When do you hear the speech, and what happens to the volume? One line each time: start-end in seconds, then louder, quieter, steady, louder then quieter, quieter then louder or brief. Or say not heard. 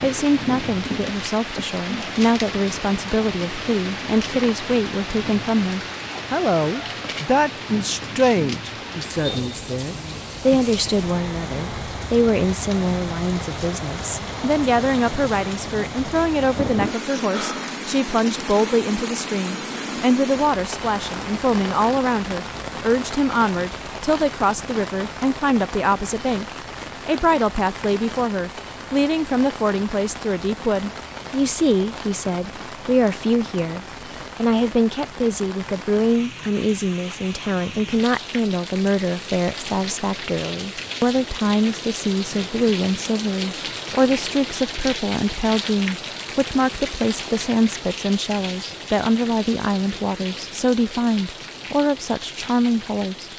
0.0-53.3 steady.